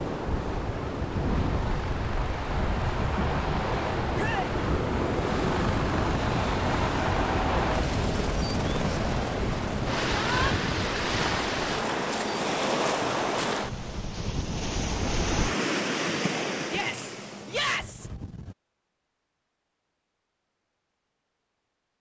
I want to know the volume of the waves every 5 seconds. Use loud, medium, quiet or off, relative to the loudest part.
loud, loud, loud, loud, off.